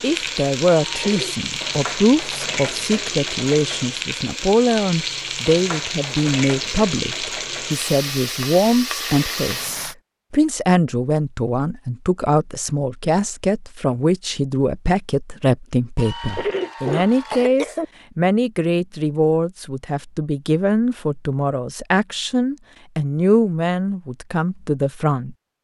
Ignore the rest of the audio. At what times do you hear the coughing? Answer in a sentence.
The coughing can be heard from 0.8 to 1.4 s and from 15.9 to 17.9 s.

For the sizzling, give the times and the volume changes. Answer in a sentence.
You can hear the sizzling from 0.0 to 9.9 s, at a steady volume.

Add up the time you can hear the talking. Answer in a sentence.
You can hear the talking for 25 seconds altogether.